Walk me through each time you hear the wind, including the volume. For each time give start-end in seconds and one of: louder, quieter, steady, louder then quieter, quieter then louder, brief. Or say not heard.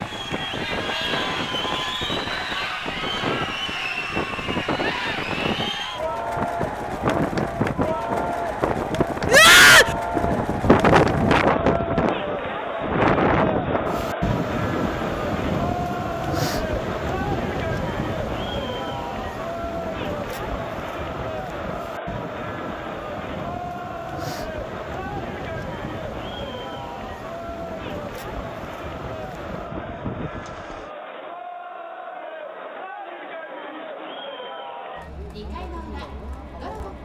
0.0-30.9 louder then quieter.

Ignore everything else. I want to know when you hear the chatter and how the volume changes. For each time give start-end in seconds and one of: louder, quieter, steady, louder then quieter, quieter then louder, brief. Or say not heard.
0.0-37.0 quieter.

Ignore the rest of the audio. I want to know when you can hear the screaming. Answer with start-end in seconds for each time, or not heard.
9.2-9.9.